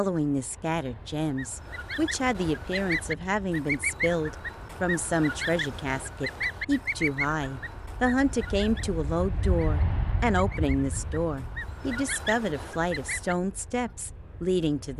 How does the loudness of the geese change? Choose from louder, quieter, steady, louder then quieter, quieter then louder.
quieter then louder.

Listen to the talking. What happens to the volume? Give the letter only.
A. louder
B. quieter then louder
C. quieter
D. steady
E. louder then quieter
D.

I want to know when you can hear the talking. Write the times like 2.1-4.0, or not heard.
0.0-14.9.